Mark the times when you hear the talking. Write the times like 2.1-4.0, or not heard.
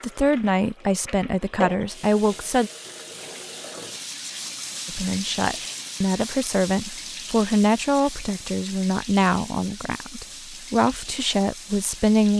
0.0-2.7, 4.8-12.3.